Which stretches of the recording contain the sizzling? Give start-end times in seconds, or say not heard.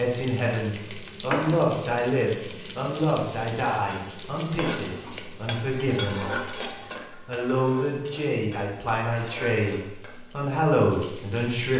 0.0-11.7.